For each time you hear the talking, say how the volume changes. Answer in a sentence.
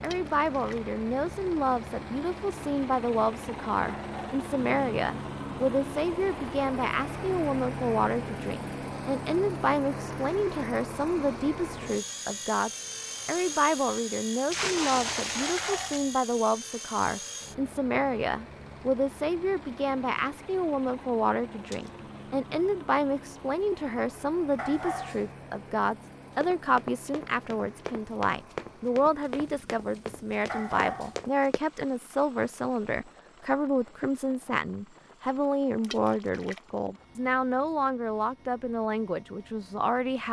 The talking can be heard from 0.0 to 40.2 s, at a steady volume.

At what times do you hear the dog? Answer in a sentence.
The dog can be heard from 3.9 to 4.4 s, from 15.4 to 16.1 s, from 24.6 to 25.3 s and from 30.4 to 31.2 s.